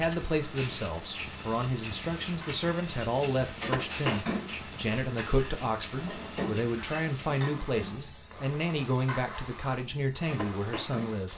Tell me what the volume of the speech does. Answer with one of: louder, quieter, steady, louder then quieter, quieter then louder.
steady.